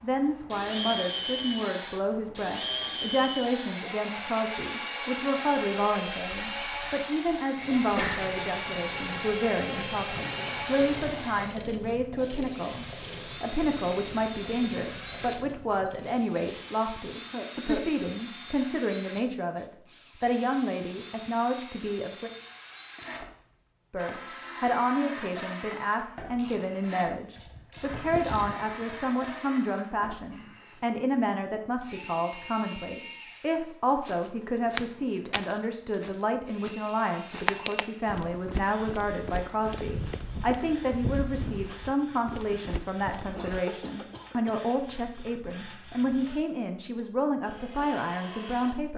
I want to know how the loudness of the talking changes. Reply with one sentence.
The volume of the talking stays about the same.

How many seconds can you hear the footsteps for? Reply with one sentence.
You can hear the footsteps for 10 seconds altogether.